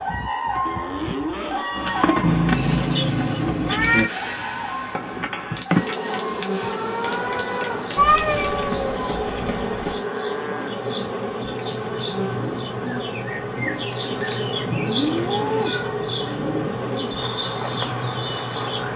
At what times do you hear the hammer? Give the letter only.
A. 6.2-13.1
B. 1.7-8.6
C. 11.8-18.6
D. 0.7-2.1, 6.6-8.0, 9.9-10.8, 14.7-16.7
B.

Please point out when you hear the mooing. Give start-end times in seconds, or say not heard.
0.7-2.1, 6.6-8.0, 9.9-10.8, 14.7-16.7.